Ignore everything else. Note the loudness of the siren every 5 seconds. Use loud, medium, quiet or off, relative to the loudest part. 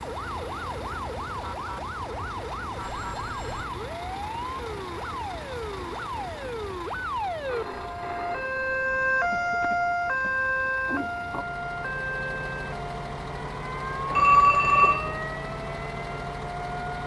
medium, loud, loud, medium.